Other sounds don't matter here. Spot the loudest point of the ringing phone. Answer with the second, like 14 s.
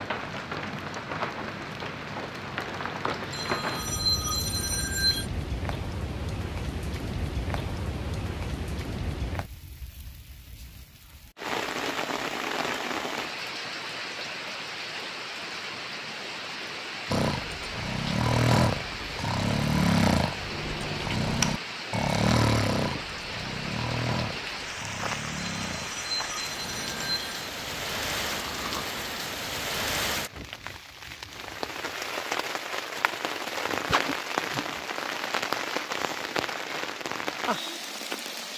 4 s.